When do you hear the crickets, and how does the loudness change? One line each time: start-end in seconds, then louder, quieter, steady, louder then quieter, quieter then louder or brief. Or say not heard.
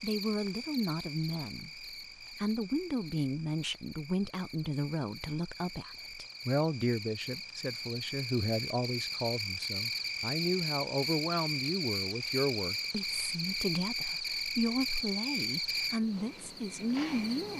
0.0-17.5 louder.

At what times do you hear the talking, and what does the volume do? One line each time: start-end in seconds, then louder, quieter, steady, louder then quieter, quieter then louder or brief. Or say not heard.
0.0-17.5 steady.